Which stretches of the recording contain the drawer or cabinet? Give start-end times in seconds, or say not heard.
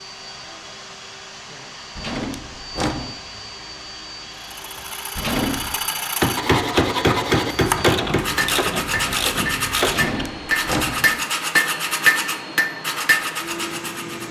1.9-3.1, 5.2-5.8, 9.8-11.2.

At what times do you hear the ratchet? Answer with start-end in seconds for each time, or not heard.
7.7-10.3.